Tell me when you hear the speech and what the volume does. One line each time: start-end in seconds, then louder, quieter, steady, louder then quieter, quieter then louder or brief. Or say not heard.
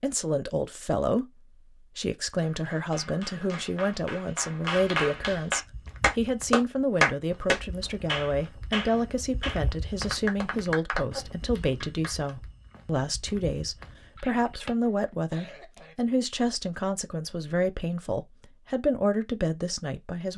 0.0-20.3 steady.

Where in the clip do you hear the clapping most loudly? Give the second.
7 s.